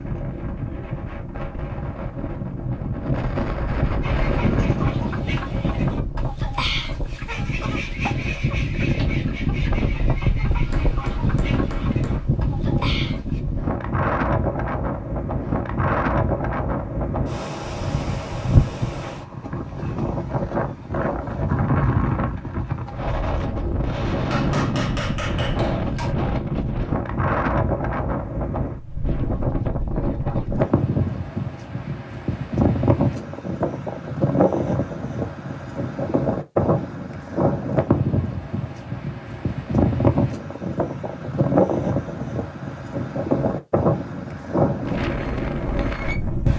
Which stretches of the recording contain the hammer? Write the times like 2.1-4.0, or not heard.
10.7-12.3, 24.3-26.1.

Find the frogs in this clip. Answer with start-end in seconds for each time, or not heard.
not heard.